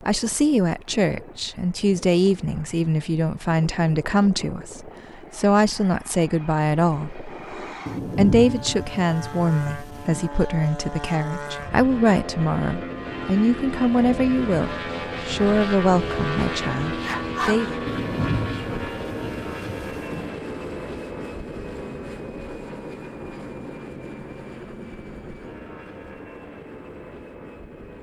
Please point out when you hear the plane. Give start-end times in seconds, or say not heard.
0.0-27.9.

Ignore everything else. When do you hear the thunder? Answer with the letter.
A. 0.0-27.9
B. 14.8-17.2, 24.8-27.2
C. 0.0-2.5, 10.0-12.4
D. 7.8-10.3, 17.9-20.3
D.